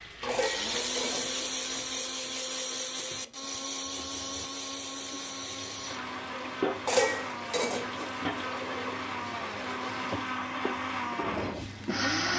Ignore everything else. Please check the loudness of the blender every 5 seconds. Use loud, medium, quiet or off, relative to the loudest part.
loud, medium, loud.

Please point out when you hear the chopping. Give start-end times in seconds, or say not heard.
not heard.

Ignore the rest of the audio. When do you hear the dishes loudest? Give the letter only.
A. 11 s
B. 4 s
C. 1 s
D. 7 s
D.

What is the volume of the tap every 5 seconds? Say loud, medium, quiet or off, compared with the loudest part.
medium, loud, loud.